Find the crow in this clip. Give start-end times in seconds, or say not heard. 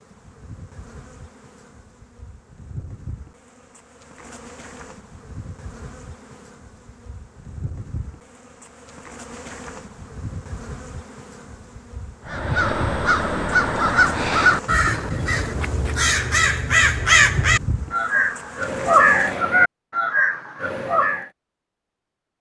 12.2-21.2.